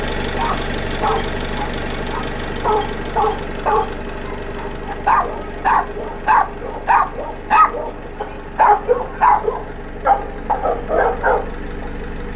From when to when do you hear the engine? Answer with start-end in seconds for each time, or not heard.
0.0-12.3.